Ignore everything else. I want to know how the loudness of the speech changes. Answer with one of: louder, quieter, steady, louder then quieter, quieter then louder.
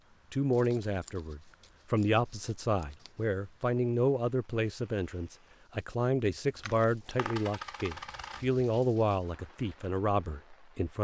steady.